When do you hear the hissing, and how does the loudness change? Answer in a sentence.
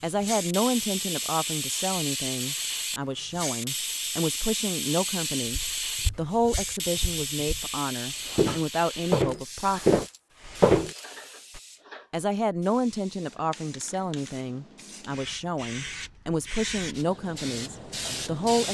You can hear the hissing from 0.0 to 18.6 s, getting quieter then louder.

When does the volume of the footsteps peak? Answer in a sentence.
The loudest moment of the footsteps is at 11 seconds.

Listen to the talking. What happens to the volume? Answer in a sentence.
The volume of the talking stays about the same.